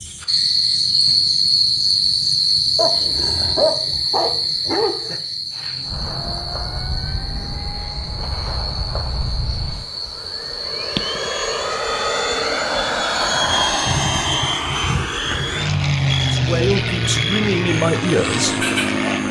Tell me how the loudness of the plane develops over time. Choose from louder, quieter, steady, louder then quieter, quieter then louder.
louder.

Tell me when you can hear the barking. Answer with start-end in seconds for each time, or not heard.
2.8-5.2.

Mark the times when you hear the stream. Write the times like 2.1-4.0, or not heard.
not heard.